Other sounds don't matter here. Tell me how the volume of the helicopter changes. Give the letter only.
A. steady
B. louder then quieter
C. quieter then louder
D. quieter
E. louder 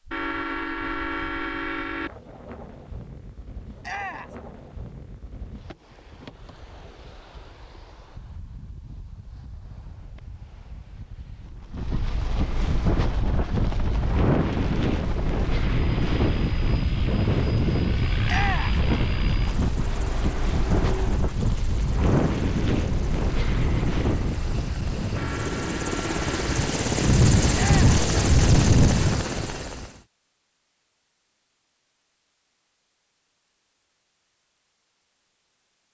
E.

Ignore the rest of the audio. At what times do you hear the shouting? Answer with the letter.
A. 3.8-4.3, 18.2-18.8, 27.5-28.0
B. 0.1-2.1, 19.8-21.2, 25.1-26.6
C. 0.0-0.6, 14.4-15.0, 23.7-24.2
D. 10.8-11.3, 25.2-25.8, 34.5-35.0
A.